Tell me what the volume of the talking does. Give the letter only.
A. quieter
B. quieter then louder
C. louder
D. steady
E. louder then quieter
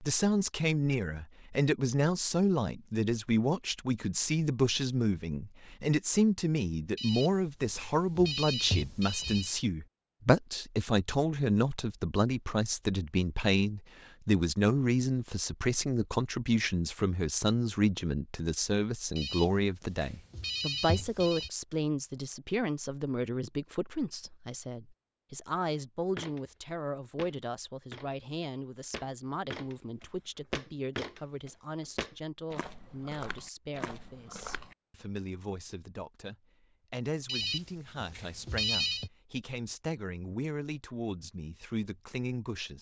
A.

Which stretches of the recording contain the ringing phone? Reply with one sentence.
The ringing phone can be heard from 7.0 to 9.6 s, from 19.1 to 21.5 s and from 37.2 to 39.1 s.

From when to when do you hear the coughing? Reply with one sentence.
The coughing can't be heard in this clip.